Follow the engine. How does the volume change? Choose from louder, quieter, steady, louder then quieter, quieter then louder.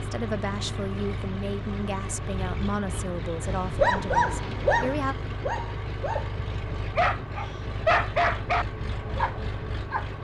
steady.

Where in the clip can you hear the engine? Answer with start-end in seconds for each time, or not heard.
0.0-10.2.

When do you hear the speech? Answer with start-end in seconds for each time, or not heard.
0.0-5.2.